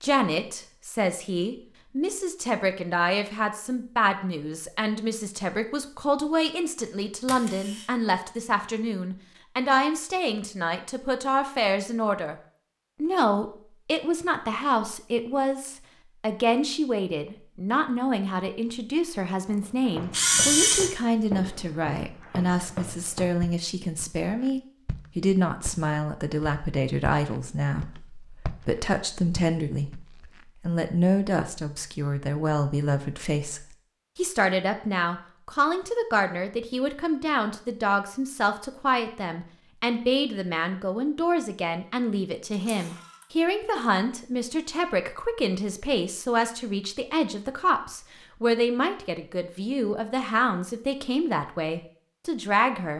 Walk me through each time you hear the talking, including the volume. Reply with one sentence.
You can hear the talking from 0.0 to 12.3 s, at a steady volume; and from 13.0 to 52.9 s, at a steady volume.